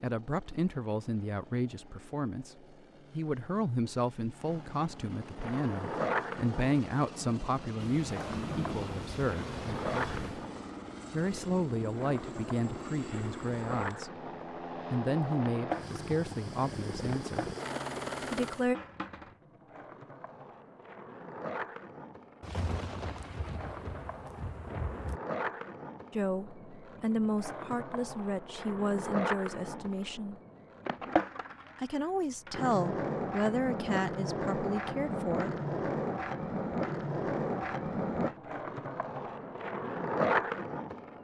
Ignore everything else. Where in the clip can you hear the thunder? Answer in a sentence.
You can hear the thunder from 7.8 to 10.5 s and from 22.4 to 25.2 s.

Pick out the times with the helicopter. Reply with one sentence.
You can hear the helicopter from 0.0 to 18.7 s.